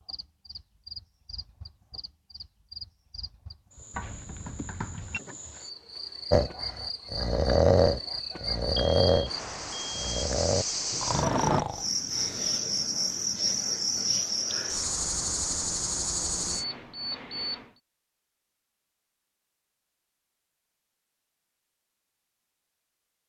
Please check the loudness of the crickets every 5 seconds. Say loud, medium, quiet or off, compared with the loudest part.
quiet, medium, loud, loud, off.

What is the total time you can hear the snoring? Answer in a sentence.
The snoring can be heard for 6 seconds in total.